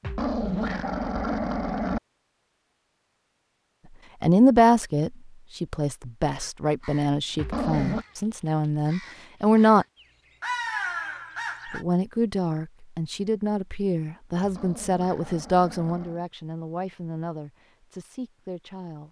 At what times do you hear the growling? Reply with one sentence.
The growling can be heard from 0.0 to 2.0 s, from 7.3 to 8.1 s and from 14.4 to 16.2 s.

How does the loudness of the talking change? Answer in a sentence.
The volume of the talking goes down.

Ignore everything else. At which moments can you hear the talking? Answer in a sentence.
The talking can be heard from 4.2 to 9.8 s and from 11.7 to 19.0 s.